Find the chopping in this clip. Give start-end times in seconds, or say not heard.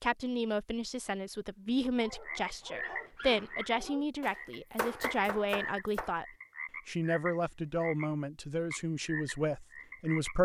4.2-6.2.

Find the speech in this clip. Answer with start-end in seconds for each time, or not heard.
0.0-6.2, 6.8-10.3.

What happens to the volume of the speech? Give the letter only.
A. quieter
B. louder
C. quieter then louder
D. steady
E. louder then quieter
D.